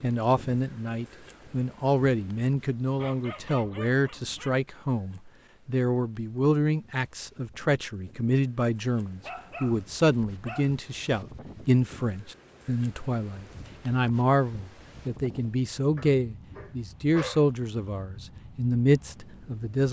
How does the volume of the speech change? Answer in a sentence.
The volume of the speech stays about the same.